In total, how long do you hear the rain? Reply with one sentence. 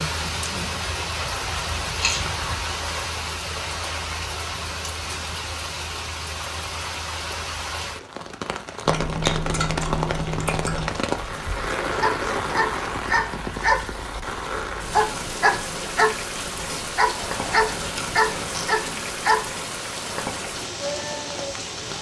You can hear the rain for 22 seconds altogether.